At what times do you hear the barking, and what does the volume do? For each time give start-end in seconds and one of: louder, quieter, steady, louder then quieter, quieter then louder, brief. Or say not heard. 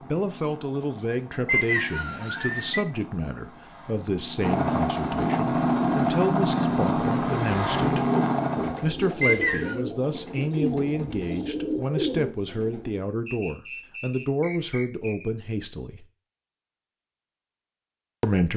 not heard.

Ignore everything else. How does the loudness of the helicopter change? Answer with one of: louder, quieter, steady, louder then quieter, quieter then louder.
louder.